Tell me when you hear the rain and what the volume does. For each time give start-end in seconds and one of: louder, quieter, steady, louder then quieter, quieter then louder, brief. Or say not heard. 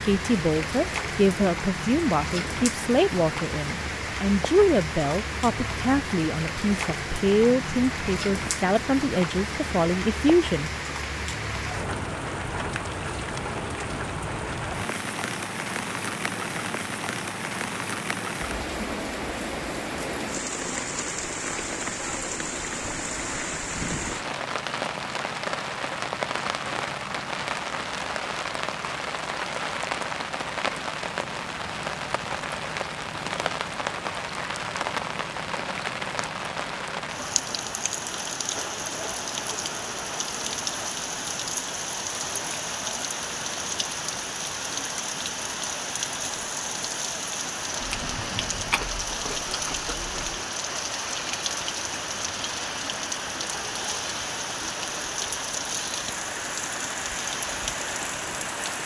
0.0-58.8 steady.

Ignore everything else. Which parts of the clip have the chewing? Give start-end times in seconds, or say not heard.
47.8-50.4.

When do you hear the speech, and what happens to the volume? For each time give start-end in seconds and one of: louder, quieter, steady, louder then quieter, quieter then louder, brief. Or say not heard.
0.0-10.7 steady.